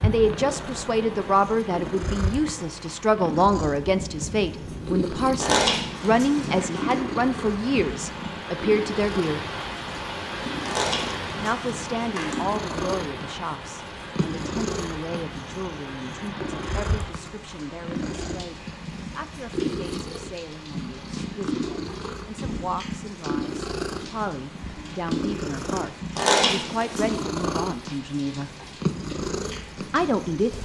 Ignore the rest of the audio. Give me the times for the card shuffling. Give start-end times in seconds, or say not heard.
5.3-7.0, 10.6-12.3, 26.1-27.2.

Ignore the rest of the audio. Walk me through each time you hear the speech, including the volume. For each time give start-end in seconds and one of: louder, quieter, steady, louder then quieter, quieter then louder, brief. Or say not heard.
0.0-9.4 steady
11.4-28.5 quieter then louder
29.9-30.5 brief.